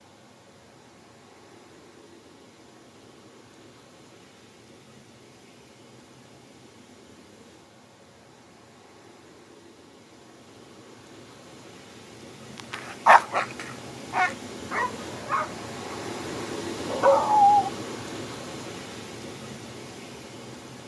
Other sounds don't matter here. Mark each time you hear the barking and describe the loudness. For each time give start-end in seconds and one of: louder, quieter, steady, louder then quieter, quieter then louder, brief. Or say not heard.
12.6-17.7 quieter then louder.